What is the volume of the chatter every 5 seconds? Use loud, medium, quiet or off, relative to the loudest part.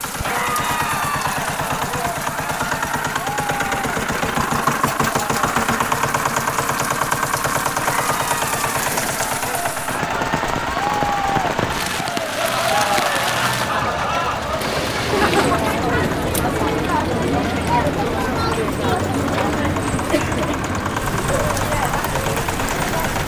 medium, medium, loud, loud, medium.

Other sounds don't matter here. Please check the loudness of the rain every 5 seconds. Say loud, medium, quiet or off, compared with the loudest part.
quiet, medium, loud, loud, loud.